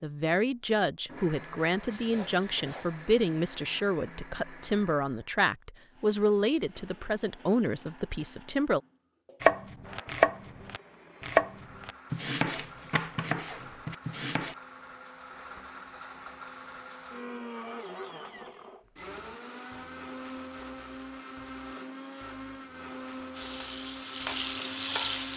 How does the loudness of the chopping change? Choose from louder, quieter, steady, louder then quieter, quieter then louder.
quieter.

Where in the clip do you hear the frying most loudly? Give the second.
25 s.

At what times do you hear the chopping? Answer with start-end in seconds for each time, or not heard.
9.4-14.6.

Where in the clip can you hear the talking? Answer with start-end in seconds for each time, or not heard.
0.0-8.8.